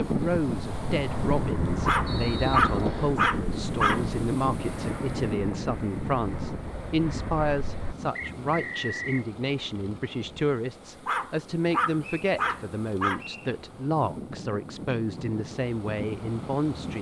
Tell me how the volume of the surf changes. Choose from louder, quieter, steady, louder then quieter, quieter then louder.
quieter then louder.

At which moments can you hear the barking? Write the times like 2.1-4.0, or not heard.
1.9-4.0, 11.1-13.2.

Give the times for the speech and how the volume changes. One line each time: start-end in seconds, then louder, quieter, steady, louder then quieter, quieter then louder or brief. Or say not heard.
0.1-16.9 steady.